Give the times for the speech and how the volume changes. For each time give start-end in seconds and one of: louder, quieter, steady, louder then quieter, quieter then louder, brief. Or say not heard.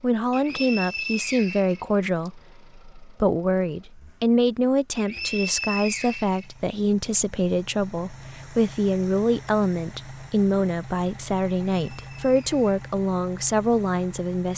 0.0-14.5 steady.